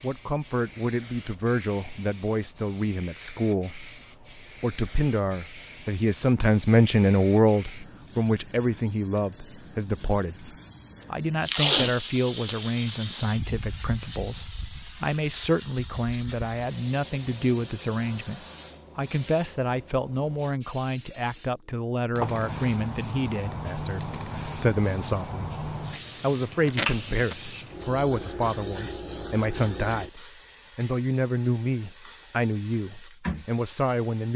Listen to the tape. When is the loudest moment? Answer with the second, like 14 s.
12 s.